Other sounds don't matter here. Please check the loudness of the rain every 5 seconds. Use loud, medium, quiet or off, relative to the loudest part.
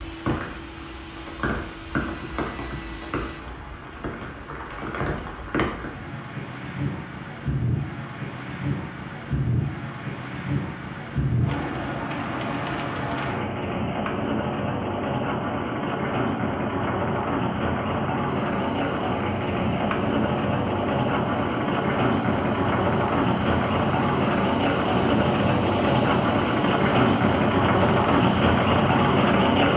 quiet, medium, medium, medium, loud, loud.